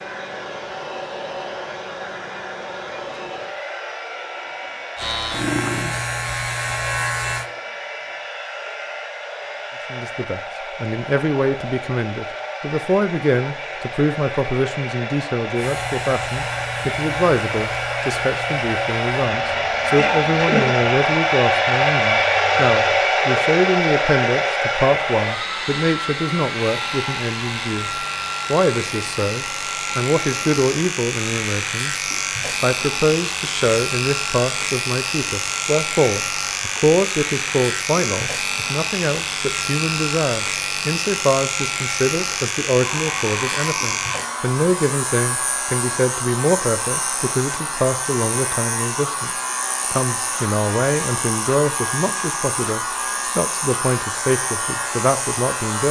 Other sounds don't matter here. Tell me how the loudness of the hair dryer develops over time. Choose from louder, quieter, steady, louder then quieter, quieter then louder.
louder then quieter.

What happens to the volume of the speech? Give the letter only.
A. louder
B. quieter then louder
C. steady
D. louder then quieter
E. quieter
C.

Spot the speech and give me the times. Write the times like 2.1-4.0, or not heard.
9.9-32.0, 32.6-49.3, 49.9-55.8.